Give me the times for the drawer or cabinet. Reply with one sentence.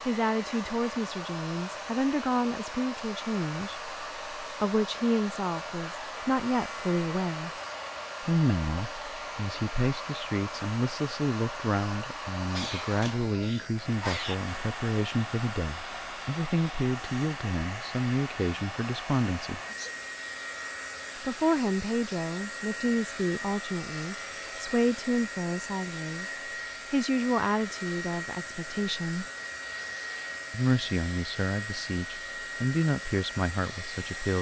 You can't hear the drawer or cabinet here.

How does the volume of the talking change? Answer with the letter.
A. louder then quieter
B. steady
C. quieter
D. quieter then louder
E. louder
B.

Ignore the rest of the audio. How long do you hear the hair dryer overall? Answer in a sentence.
The hair dryer can be heard for 34 seconds in total.